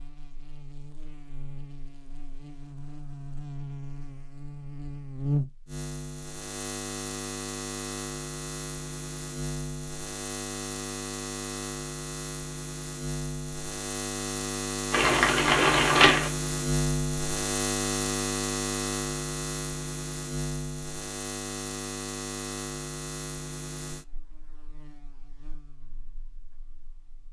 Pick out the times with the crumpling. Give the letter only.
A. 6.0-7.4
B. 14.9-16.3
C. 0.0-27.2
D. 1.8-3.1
B.